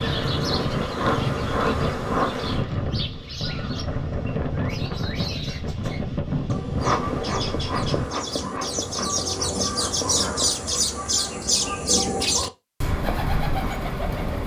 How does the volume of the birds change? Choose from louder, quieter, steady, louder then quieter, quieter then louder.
louder.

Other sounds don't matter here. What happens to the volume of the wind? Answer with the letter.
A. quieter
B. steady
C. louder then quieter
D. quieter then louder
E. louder
B.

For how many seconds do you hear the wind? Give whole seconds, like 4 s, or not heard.
8 s.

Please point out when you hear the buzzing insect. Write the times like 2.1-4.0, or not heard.
0.0-2.6, 6.8-11.3.